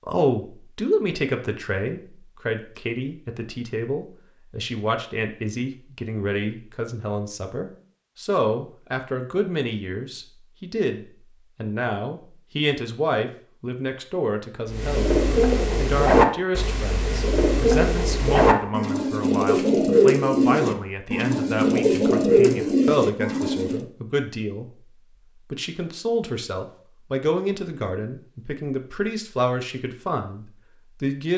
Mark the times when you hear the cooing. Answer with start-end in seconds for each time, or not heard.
14.7-23.9.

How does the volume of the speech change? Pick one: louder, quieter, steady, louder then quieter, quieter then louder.
steady.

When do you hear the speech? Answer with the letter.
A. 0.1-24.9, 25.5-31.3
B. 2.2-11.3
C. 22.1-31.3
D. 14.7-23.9
A.